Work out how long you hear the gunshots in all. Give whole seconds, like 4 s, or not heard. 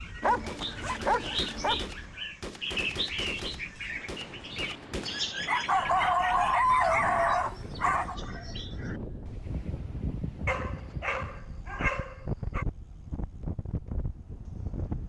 5 s.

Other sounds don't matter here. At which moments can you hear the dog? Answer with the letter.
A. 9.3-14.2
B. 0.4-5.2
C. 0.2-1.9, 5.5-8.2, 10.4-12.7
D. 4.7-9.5
C.